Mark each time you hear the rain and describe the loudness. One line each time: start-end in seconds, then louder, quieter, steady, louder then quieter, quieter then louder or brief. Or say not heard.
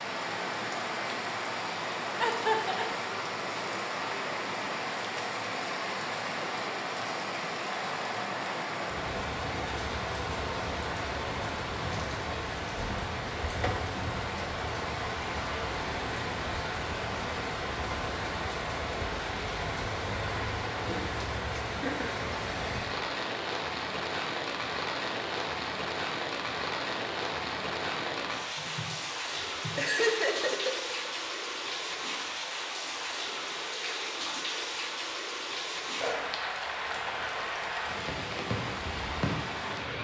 0.0-40.0 steady.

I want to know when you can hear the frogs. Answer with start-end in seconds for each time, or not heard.
not heard.